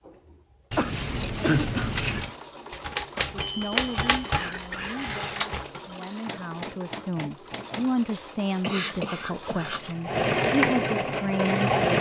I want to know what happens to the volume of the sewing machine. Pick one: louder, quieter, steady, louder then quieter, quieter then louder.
louder.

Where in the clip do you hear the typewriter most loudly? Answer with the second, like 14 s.
4 s.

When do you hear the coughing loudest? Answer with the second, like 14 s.
2 s.